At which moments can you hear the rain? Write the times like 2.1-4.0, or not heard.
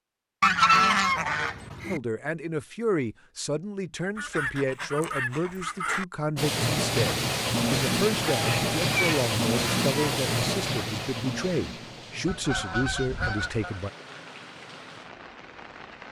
6.3-16.0.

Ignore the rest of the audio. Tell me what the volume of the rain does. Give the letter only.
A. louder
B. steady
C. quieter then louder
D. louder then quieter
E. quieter
E.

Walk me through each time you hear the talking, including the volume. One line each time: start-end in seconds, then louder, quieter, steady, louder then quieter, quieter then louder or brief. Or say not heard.
1.9-13.9 steady.